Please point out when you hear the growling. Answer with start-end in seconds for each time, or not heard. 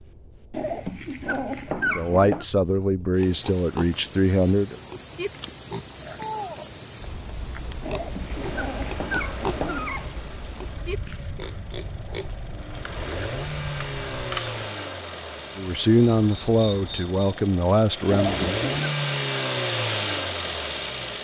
0.5-2.5, 7.8-10.2, 18.1-18.9.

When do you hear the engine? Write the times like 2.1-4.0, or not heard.
8.1-21.1.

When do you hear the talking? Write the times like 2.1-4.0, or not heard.
1.9-4.8, 15.6-18.4.